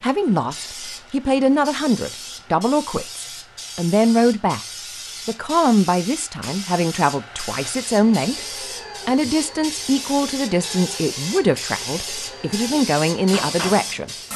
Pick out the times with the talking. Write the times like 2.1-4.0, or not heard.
0.0-4.6, 5.2-8.3, 9.1-14.2.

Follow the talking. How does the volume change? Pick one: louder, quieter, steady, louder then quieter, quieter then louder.
steady.